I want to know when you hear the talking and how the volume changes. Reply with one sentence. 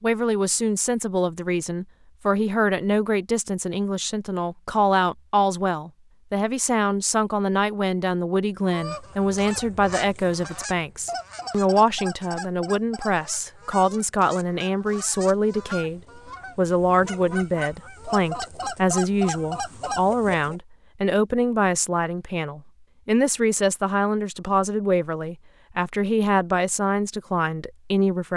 The talking can be heard from 0.0 to 28.3 s, at a steady volume.